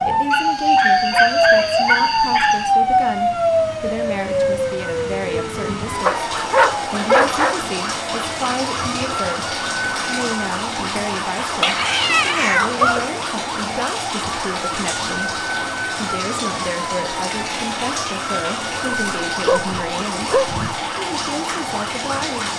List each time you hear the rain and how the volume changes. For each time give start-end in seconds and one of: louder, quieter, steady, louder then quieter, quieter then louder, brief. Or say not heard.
0.0-22.5 louder.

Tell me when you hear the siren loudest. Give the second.
1 s.